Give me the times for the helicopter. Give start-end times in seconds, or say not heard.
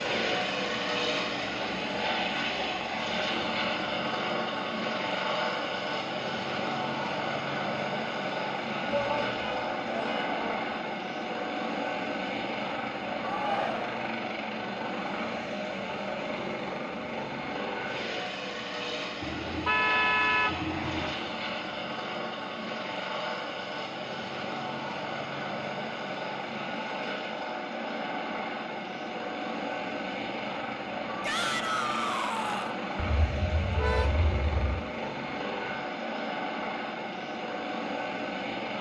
0.0-38.7.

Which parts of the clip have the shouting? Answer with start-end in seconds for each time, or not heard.
8.9-10.7, 13.2-13.9, 31.2-32.8.